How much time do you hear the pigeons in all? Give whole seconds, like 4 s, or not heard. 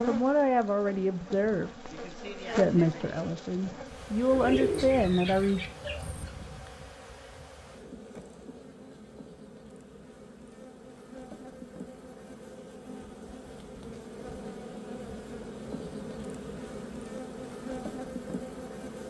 2 s.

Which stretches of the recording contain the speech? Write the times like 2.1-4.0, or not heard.
0.1-5.6.